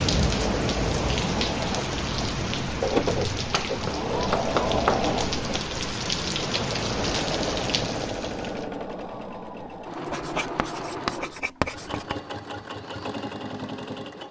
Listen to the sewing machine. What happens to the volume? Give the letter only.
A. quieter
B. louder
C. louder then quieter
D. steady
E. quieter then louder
A.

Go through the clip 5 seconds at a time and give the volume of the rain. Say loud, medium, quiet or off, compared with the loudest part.
loud, loud, off.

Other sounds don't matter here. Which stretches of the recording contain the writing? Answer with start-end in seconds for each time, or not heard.
3.5-5.0, 10.1-12.2.